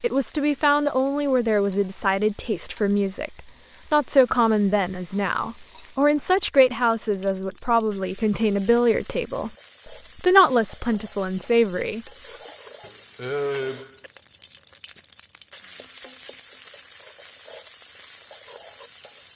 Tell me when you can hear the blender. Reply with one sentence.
You can't hear the blender here.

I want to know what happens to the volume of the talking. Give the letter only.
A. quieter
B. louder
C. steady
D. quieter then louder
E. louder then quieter
C.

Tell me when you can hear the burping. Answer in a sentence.
The burping can be heard from 12.8 to 14.1 s.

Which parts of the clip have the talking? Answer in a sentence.
The talking can be heard from 0.0 to 12.1 s.